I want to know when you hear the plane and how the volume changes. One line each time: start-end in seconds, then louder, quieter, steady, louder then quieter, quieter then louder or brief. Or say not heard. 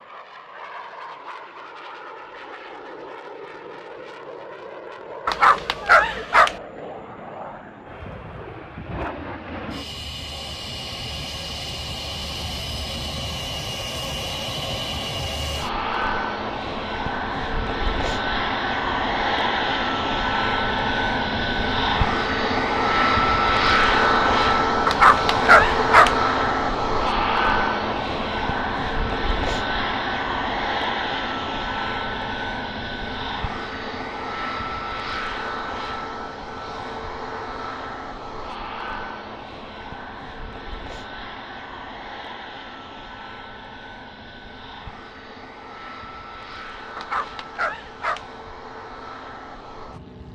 0.0-50.2 louder then quieter.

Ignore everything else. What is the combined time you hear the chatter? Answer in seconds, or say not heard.
not heard.